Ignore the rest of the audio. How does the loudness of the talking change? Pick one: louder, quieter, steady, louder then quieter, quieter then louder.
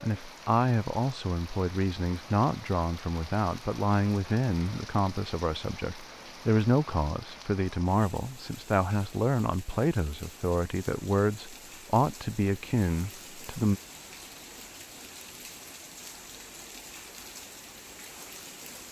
steady.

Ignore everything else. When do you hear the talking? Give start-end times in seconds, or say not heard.
0.0-13.8.